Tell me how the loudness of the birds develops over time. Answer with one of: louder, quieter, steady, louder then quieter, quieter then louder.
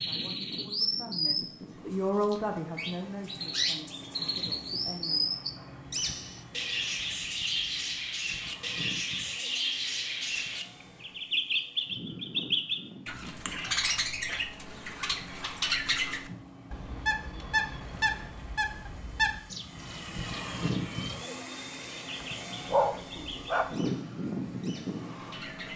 quieter.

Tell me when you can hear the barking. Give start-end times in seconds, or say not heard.
22.7-23.8.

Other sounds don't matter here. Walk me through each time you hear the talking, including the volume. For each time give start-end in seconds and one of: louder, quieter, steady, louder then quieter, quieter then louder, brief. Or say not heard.
0.0-5.3 louder then quieter.